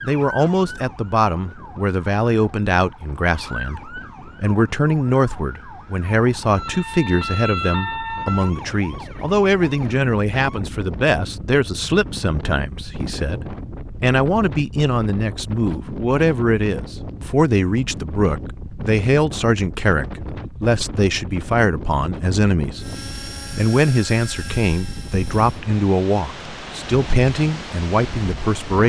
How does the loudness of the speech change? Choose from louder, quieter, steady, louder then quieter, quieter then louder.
steady.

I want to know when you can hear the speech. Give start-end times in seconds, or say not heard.
0.0-22.8, 23.6-28.8.